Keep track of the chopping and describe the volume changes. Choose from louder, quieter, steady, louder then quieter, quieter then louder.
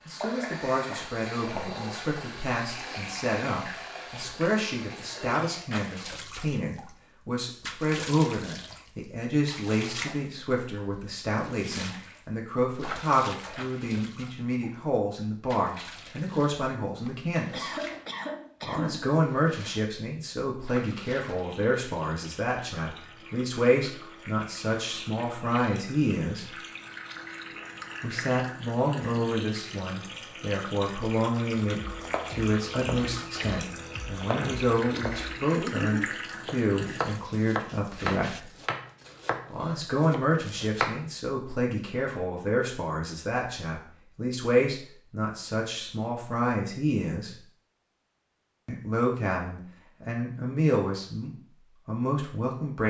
louder then quieter.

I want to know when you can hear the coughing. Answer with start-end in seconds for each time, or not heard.
16.9-19.1.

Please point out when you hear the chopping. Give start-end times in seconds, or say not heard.
31.8-41.0.